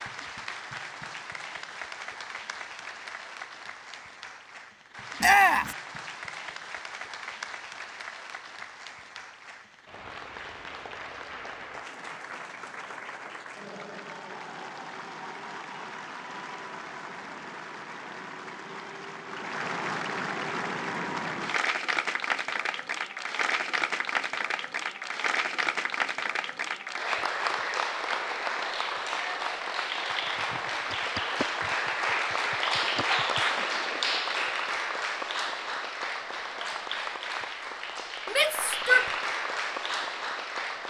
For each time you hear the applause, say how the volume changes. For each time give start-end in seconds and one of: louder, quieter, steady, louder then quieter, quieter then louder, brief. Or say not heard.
0.0-40.8 louder.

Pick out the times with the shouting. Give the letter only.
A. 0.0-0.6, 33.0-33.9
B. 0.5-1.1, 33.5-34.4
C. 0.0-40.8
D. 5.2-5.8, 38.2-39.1
D.